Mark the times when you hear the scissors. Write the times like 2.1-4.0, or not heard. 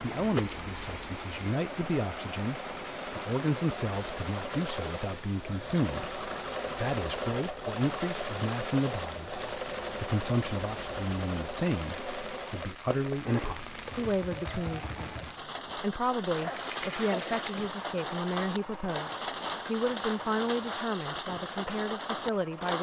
not heard.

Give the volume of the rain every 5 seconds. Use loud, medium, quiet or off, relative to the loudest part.
medium, medium, medium, loud, loud.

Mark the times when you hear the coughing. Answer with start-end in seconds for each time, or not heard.
16.4-17.4.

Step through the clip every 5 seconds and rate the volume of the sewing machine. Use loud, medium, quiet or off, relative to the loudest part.
loud, loud, loud, medium, medium.